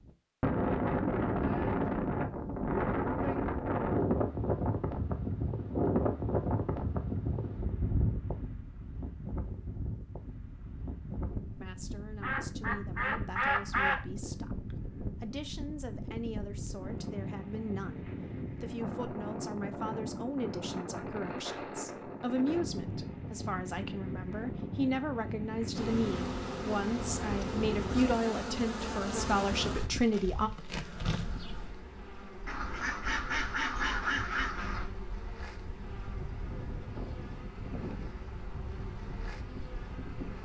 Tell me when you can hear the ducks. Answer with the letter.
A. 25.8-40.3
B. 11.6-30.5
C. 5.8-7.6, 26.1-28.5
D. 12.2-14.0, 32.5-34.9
D.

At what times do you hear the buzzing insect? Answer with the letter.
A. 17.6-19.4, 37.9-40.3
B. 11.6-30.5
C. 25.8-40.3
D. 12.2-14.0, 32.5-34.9
C.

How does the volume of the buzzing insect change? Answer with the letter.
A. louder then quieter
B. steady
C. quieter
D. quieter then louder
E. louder
C.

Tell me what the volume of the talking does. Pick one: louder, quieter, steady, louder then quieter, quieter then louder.
louder.